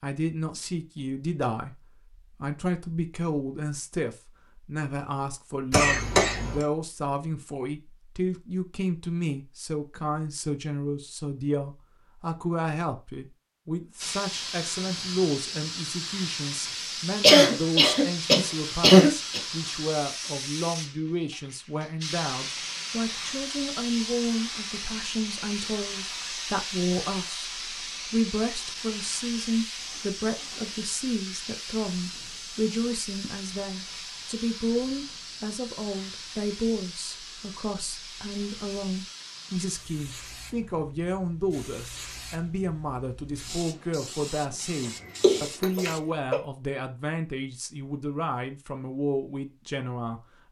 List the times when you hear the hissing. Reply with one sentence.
You can hear the hissing from 14.0 to 46.0 s.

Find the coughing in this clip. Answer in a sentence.
You can hear the coughing from 5.7 to 6.6 s, from 17.2 to 19.4 s and from 45.2 to 46.4 s.